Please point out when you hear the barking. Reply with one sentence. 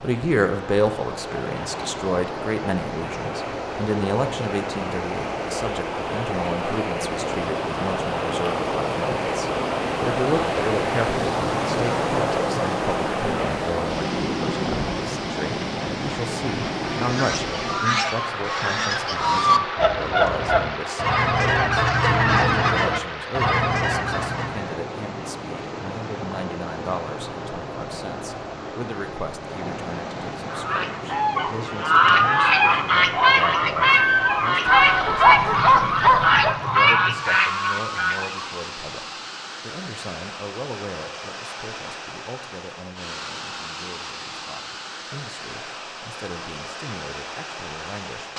You can hear the barking from 34.6 to 36.5 s.